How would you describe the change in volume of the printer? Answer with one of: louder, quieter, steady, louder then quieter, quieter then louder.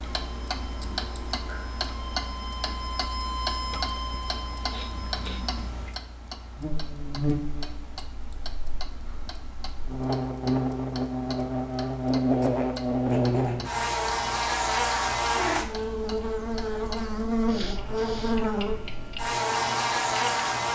louder then quieter.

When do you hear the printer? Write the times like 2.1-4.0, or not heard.
0.0-6.0.